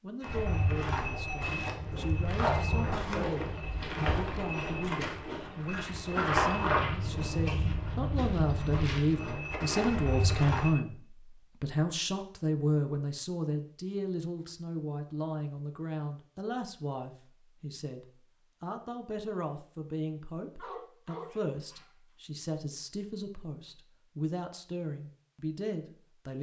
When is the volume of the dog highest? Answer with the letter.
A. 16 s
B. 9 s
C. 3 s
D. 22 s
C.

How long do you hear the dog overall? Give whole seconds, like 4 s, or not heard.
3 s.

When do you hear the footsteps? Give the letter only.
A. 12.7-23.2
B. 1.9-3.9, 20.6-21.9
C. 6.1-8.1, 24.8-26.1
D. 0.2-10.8
D.